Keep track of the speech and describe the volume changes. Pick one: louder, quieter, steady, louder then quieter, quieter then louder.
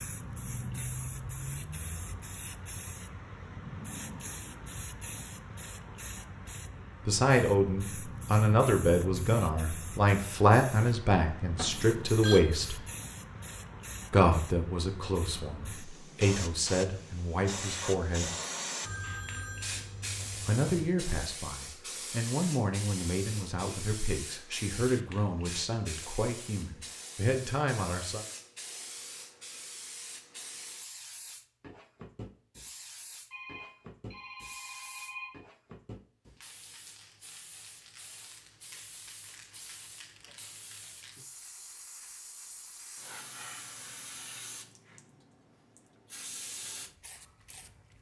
quieter.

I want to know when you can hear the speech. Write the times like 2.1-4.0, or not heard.
7.0-12.8, 14.1-18.3, 20.4-28.2.